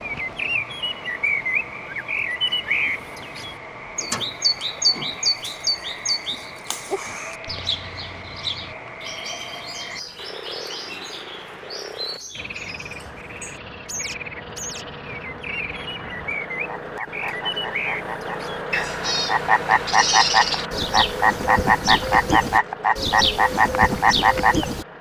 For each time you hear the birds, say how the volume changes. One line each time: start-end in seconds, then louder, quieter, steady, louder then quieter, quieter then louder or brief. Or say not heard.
0.0-24.9 quieter then louder.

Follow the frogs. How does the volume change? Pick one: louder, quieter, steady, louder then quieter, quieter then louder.
louder.